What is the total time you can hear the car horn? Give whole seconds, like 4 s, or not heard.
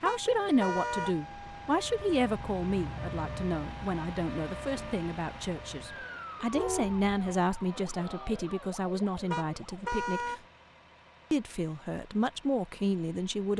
3 s.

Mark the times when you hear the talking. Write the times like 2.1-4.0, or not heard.
0.0-10.4, 11.3-13.5.